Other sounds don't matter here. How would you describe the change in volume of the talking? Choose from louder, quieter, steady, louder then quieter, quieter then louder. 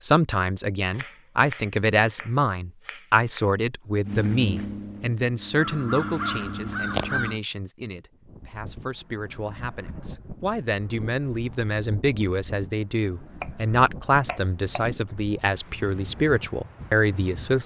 quieter then louder.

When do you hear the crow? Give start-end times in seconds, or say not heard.
4.0-7.4.